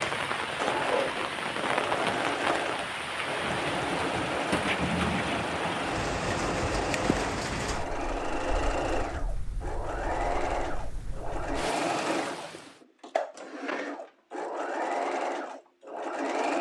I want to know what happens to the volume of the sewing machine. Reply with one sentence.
The volume of the sewing machine stays about the same.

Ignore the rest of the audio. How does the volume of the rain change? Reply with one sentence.
The volume of the rain goes down.